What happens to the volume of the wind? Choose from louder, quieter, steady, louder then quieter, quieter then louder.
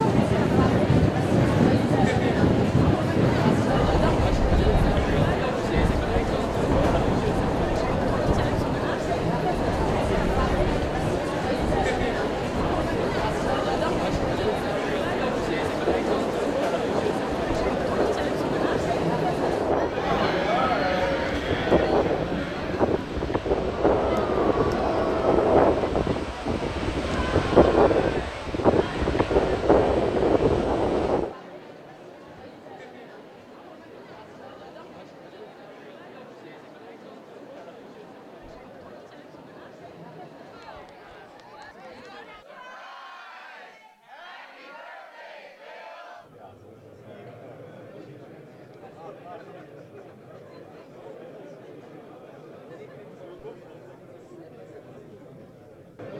quieter then louder.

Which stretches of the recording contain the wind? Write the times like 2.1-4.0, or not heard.
0.0-31.4.